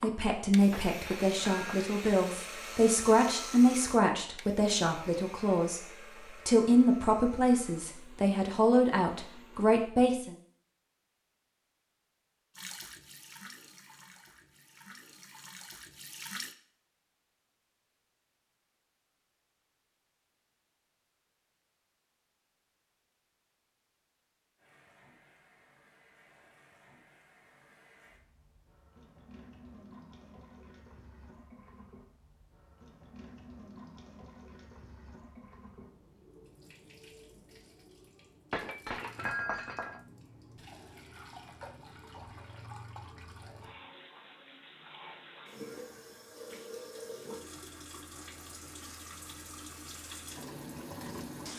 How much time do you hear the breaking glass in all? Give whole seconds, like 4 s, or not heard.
3 s.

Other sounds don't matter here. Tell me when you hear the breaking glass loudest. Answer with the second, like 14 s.
39 s.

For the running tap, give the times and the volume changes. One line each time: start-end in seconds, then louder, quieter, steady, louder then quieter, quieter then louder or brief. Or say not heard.
12.6-16.6 quieter then louder
24.6-51.5 louder.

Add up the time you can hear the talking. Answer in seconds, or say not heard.
10 s.